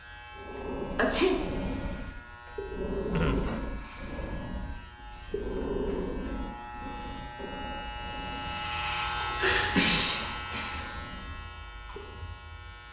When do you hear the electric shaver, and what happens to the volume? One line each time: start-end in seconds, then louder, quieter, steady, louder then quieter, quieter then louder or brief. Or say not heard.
0.0-12.8 louder then quieter.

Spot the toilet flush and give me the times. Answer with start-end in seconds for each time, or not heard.
3.1-3.7, 9.8-10.9.